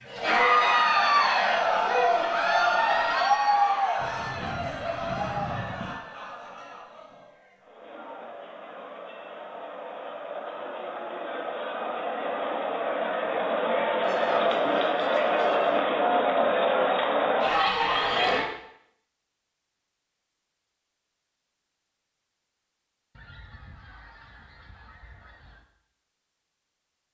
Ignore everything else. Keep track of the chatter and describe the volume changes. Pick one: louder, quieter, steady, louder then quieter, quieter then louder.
quieter then louder.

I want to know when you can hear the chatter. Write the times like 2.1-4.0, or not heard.
0.0-18.4.